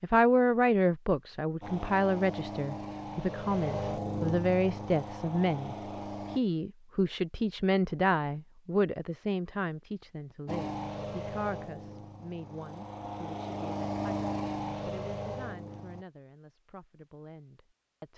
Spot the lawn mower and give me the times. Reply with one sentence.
The lawn mower can be heard from 1.6 to 6.4 s and from 10.4 to 16.1 s.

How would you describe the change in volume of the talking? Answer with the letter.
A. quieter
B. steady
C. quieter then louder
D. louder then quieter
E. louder
A.